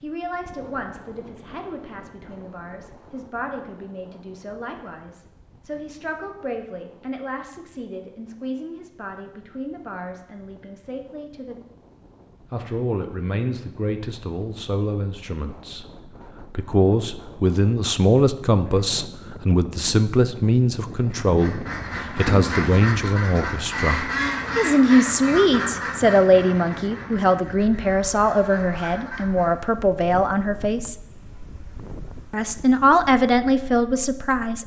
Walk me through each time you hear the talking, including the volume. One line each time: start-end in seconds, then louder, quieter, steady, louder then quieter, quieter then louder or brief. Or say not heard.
0.0-11.6 steady
12.5-30.9 louder
32.3-34.6 brief.